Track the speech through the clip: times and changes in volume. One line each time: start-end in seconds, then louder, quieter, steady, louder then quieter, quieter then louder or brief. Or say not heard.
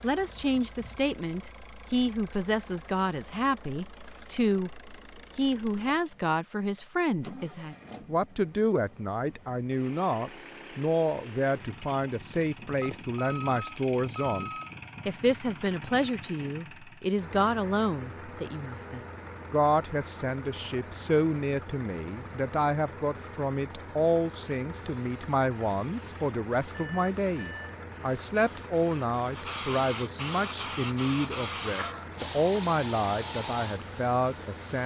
0.0-34.8 steady.